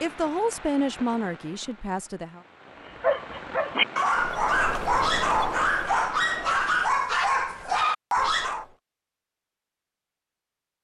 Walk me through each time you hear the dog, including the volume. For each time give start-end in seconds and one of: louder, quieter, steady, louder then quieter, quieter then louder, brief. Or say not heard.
2.8-8.7 steady.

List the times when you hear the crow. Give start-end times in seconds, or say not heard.
not heard.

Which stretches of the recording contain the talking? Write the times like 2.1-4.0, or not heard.
0.0-2.4.